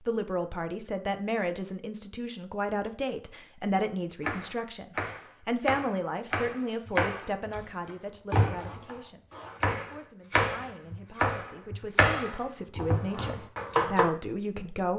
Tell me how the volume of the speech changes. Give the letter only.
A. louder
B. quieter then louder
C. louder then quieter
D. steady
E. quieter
B.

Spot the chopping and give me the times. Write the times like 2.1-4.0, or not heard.
4.2-14.1.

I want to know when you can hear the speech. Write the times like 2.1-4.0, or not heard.
0.1-14.9.